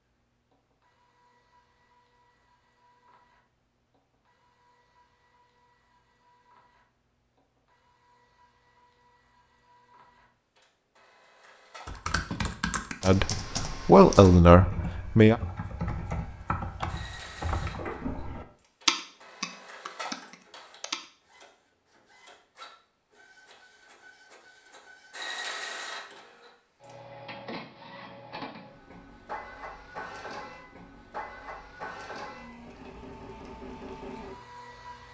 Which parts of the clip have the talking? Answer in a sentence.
The talking can be heard from 13.0 to 15.4 s.